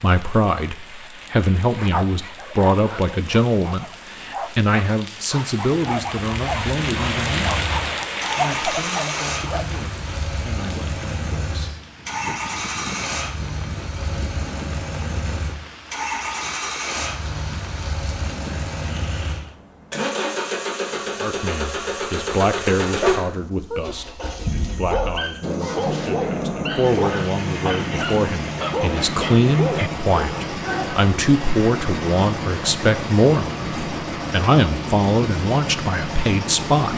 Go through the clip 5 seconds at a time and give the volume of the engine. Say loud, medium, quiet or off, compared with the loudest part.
off, loud, loud, loud, loud, loud, loud, loud.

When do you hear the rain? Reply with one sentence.
You can hear the rain from 0.0 to 19.6 s.